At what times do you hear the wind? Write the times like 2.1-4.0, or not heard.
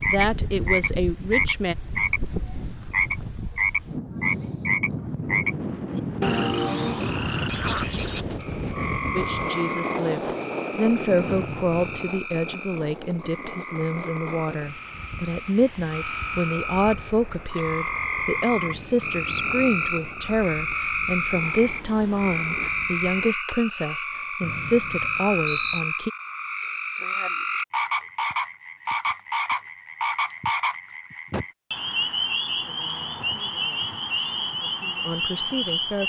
0.0-23.4.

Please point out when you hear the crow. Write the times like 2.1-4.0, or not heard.
not heard.